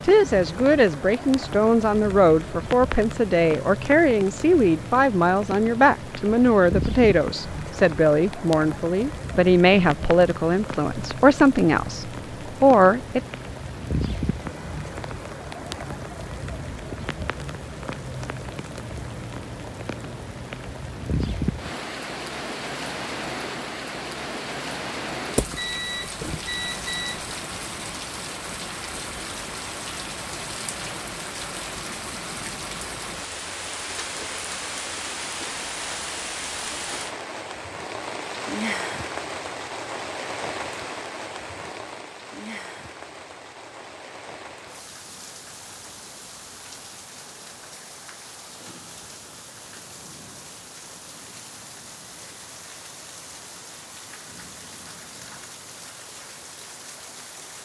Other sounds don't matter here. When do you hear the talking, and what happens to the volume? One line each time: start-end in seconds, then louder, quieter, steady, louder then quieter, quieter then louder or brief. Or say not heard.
0.0-13.2 steady.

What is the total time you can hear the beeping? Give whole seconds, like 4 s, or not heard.
2 s.